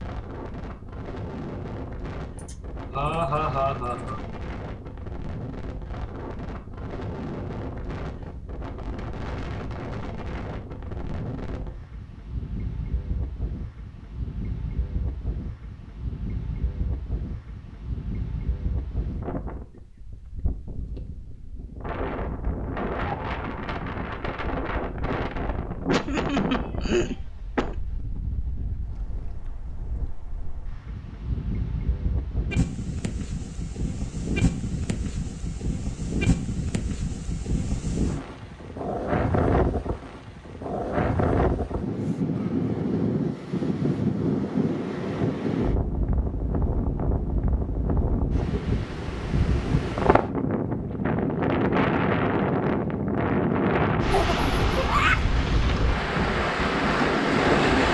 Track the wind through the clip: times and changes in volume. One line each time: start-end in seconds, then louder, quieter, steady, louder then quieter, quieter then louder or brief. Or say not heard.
0.0-57.8 louder.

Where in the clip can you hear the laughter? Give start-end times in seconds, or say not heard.
2.4-4.2, 25.9-27.8, 54.1-55.2.